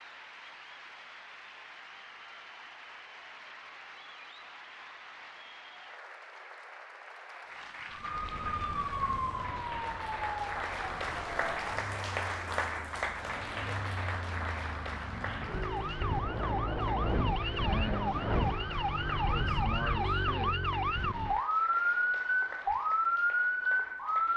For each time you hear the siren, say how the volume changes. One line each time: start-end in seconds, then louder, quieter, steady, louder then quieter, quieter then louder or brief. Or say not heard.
7.9-24.3 quieter then louder.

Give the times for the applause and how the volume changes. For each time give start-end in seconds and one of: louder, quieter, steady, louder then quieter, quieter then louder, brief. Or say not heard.
0.0-24.3 louder then quieter.